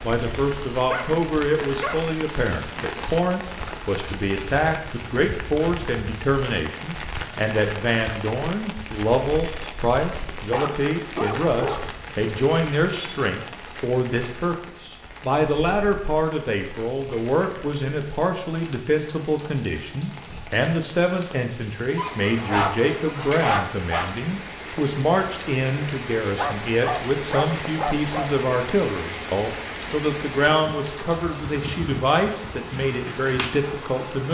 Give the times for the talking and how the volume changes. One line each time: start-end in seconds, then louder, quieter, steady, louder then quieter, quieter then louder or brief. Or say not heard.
0.0-34.2 steady.